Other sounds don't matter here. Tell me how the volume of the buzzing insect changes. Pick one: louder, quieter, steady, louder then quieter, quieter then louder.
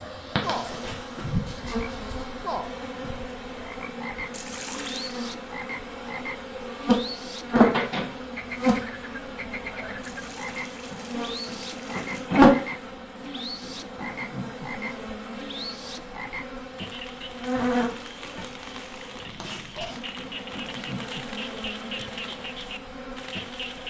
louder then quieter.